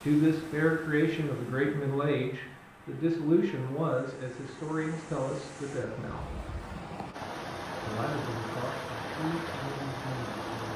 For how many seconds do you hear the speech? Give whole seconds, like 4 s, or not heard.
9 s.